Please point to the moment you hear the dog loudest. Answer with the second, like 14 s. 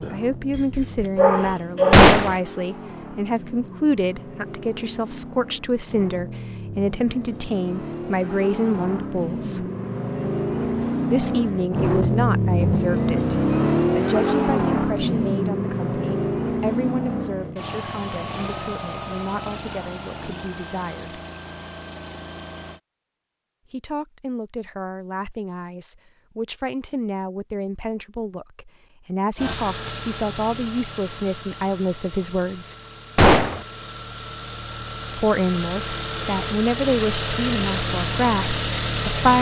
2 s.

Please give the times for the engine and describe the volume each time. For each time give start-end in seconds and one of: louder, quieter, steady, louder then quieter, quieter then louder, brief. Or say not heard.
0.0-22.8 louder then quieter
29.4-39.3 quieter then louder.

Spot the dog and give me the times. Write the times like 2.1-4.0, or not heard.
0.0-2.0.